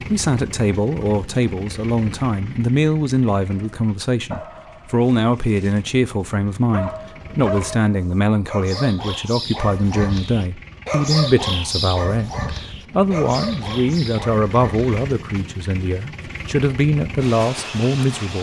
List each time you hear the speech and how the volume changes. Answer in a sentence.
The speech can be heard from 0.0 to 18.3 s, at a steady volume.